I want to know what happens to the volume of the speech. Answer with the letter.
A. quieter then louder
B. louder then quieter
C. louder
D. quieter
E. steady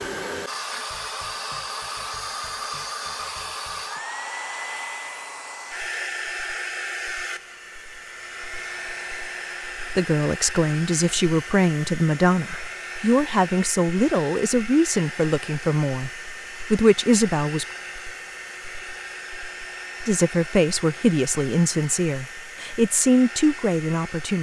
E.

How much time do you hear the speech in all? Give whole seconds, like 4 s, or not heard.
12 s.